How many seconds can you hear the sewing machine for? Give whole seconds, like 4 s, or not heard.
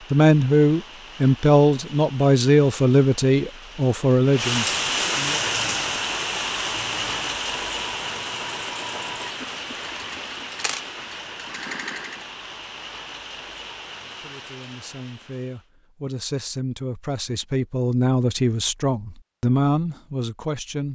7 s.